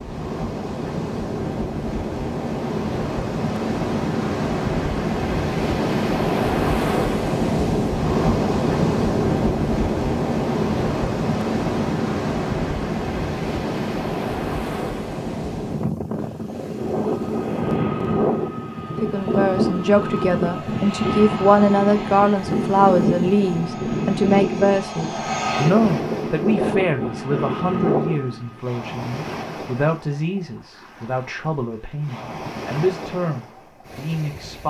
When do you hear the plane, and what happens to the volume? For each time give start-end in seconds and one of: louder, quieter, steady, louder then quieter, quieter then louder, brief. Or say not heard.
16.6-28.6 steady.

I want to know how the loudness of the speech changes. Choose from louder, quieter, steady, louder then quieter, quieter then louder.
quieter.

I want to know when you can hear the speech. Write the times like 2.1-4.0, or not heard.
19.0-34.6.